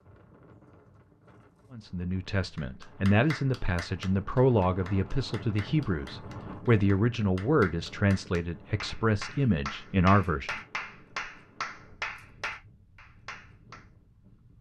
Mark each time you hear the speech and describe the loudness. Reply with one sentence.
The speech can be heard from 1.7 to 10.6 s, at a steady volume.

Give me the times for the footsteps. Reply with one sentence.
The footsteps can't be heard in this clip.